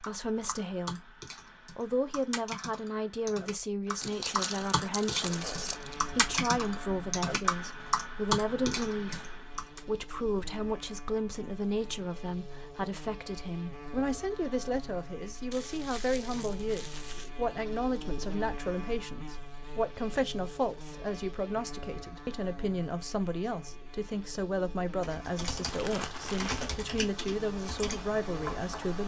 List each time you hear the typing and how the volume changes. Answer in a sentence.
The typing can be heard from 0.0 to 9.8 s, getting louder; and from 25.0 to 29.0 s, at a steady volume.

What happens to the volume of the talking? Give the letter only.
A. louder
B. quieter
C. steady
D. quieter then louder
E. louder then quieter
C.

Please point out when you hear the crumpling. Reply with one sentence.
The crumpling can be heard from 4.0 to 6.0 s, from 15.5 to 17.3 s and from 25.6 to 26.7 s.